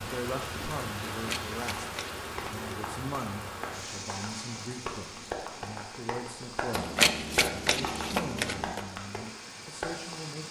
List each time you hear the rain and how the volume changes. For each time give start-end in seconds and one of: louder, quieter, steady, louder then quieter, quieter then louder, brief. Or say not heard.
0.0-10.4 quieter.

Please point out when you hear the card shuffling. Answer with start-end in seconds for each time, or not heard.
1.1-2.7, 6.7-8.8.